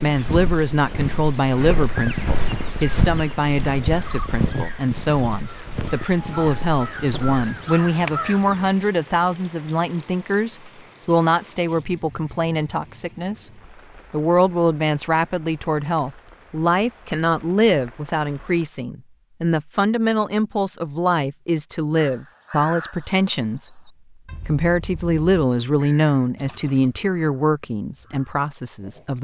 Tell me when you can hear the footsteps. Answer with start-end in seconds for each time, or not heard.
0.1-7.5.